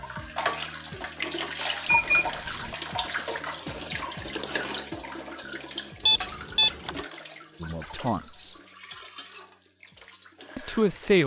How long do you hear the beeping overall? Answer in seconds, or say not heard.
2 s.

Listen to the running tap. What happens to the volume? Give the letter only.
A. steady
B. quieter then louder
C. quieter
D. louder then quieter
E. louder
C.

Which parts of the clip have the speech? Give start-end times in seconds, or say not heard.
7.6-8.6, 10.6-11.2.